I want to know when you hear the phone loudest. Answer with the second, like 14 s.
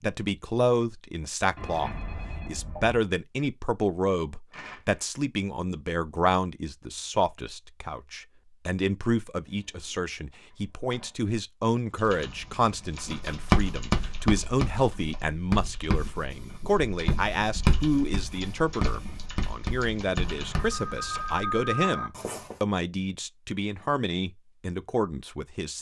22 s.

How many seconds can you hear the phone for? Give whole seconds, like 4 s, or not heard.
5 s.